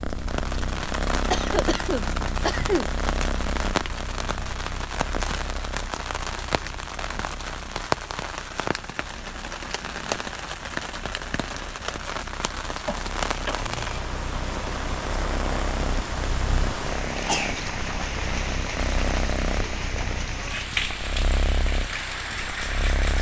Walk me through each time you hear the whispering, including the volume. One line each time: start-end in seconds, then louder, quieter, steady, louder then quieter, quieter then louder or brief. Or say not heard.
not heard.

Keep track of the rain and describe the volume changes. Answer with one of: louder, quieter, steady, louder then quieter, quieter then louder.
steady.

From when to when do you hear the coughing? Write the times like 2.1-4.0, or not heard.
1.3-2.9, 12.8-13.8, 17.1-17.6.